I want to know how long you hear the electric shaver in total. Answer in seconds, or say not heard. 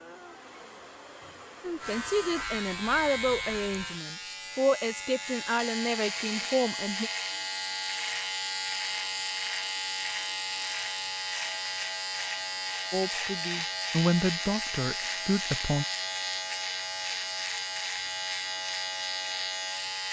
18 s.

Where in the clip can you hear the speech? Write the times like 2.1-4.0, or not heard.
1.6-7.1, 12.9-15.8.